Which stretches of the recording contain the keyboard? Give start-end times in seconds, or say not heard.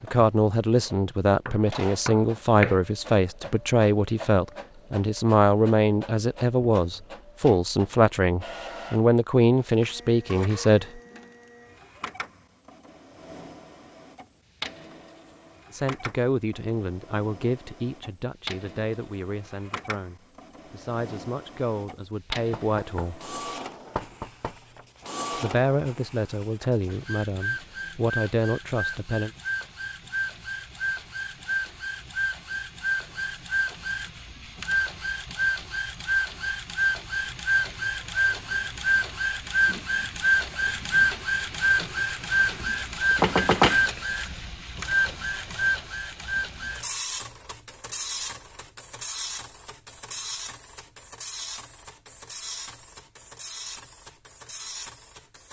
not heard.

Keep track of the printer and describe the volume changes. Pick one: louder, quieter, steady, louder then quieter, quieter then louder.
louder then quieter.